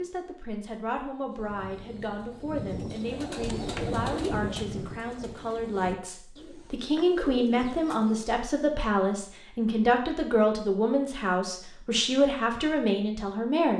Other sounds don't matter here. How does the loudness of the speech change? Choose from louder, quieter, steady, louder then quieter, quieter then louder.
louder.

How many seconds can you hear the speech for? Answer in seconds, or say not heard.
14 s.